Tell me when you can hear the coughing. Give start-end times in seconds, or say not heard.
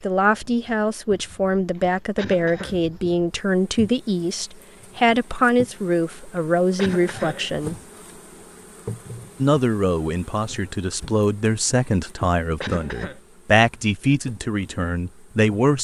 2.1-2.8, 6.8-7.5, 12.6-13.2.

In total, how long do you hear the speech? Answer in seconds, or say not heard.
14 s.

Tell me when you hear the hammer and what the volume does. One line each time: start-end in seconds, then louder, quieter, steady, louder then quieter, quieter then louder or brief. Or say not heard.
not heard.